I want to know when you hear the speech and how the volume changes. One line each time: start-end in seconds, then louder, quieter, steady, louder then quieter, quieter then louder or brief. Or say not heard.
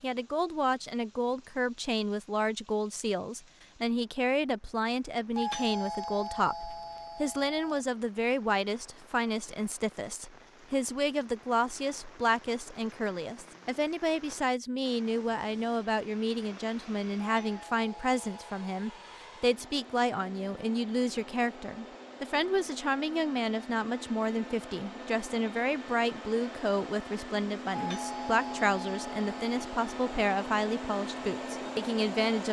0.0-32.4 steady.